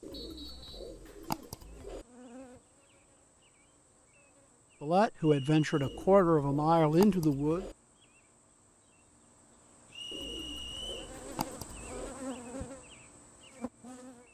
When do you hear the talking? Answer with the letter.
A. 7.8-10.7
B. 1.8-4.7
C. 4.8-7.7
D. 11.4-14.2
C.